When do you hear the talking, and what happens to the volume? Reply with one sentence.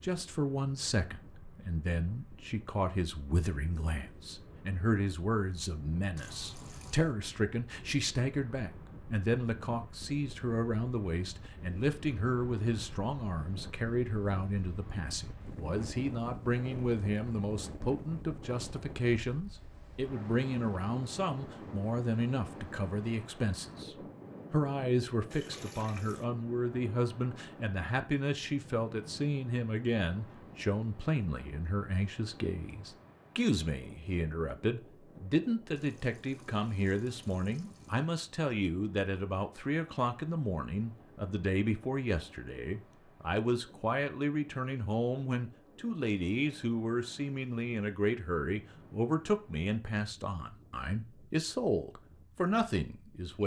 You can hear the talking from 0.0 to 53.4 s, at a steady volume.